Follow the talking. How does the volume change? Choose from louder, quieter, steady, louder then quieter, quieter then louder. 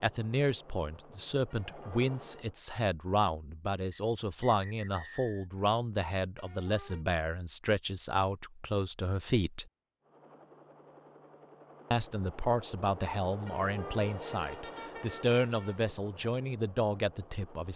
steady.